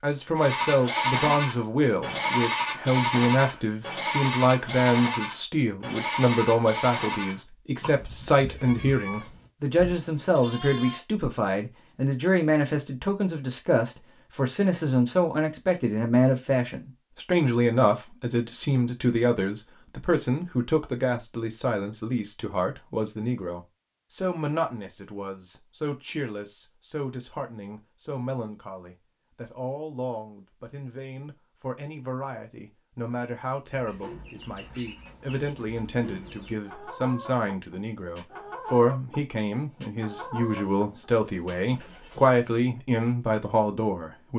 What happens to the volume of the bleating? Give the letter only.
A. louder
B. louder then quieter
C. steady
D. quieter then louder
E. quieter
E.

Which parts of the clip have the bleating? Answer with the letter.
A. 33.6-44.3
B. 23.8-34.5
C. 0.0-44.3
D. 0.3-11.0
D.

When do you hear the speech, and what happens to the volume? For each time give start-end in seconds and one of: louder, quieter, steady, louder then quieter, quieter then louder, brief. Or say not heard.
0.0-44.3 quieter then louder.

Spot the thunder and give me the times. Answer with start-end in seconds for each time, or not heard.
not heard.